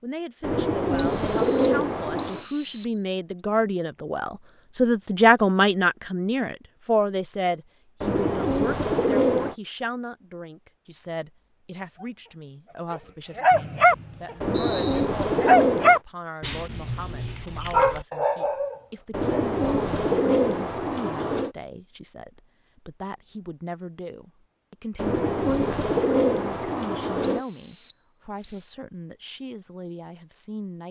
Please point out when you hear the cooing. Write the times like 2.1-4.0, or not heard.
0.4-2.5, 8.0-9.6, 14.4-16.0, 19.1-21.6, 24.9-27.4.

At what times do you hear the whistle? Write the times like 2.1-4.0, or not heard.
0.9-3.0, 13.5-15.1, 27.2-28.7.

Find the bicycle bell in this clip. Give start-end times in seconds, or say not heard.
not heard.